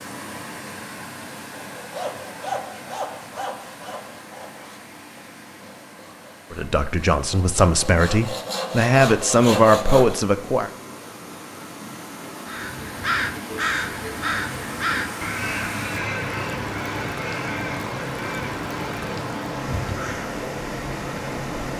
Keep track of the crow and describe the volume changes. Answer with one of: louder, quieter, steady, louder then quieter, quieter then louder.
quieter.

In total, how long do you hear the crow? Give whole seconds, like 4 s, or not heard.
8 s.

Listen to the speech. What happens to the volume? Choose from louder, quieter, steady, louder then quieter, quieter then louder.
louder.